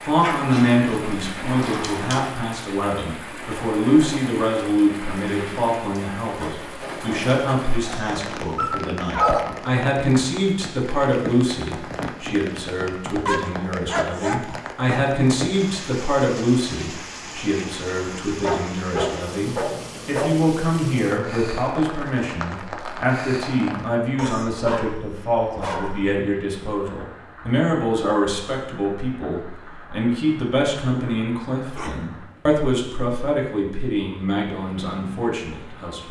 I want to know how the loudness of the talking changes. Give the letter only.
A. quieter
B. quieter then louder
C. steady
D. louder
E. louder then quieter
C.